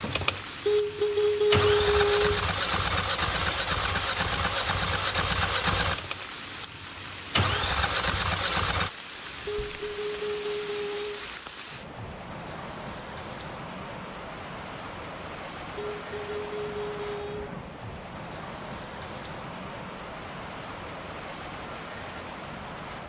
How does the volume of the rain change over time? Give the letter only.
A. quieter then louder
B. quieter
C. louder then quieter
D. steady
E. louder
D.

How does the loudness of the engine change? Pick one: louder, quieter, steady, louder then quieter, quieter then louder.
steady.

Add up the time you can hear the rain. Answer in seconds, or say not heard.
23 s.